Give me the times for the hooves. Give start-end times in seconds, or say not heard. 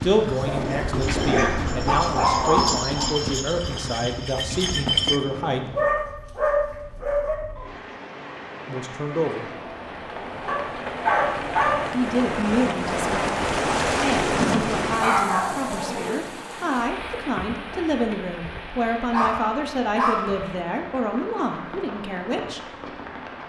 0.0-5.2.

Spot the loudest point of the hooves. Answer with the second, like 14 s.
5 s.